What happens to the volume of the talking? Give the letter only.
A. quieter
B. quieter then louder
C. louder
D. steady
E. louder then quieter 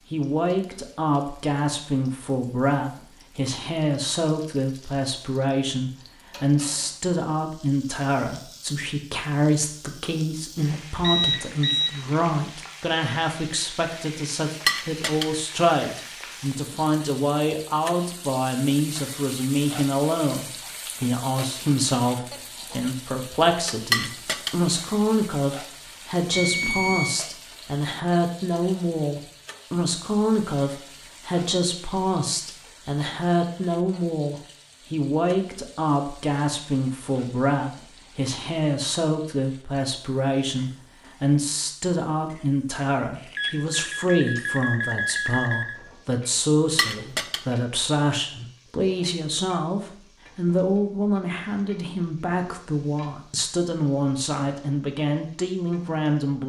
D.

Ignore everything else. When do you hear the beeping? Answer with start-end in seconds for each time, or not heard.
11.0-11.9, 26.3-27.2, 43.1-45.8.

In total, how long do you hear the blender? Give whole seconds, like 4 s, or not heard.
not heard.